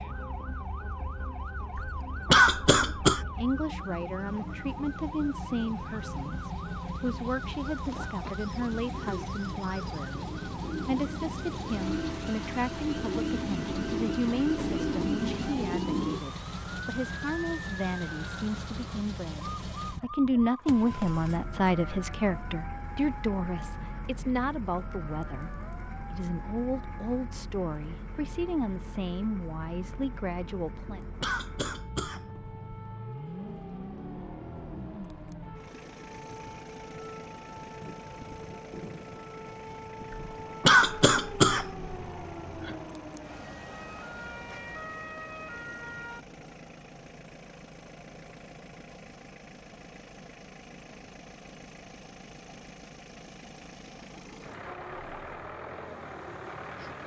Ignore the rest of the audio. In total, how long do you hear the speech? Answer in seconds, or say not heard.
27 s.